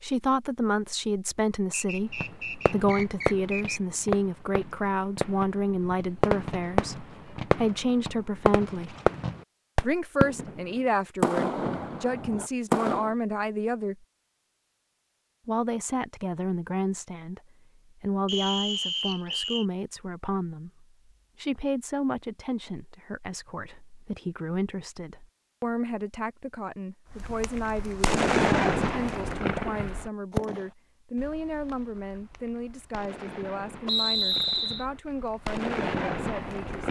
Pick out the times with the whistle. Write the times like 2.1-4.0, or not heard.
1.7-3.8, 18.2-19.6, 33.9-34.9.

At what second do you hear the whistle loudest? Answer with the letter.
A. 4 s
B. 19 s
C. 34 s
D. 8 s
C.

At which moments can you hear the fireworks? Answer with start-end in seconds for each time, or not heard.
2.2-10.6, 11.2-13.2, 27.1-36.8.